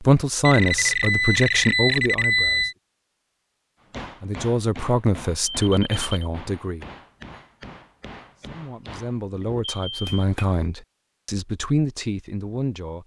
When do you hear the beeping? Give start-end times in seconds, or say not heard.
0.4-2.8, 5.5-6.1, 9.6-10.1.